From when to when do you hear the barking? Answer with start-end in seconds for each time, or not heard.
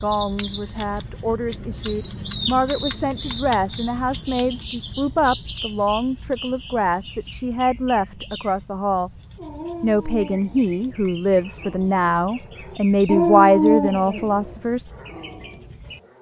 9.3-16.1.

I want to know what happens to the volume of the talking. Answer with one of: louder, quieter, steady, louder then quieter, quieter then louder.
louder.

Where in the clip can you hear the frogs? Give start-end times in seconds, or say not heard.
not heard.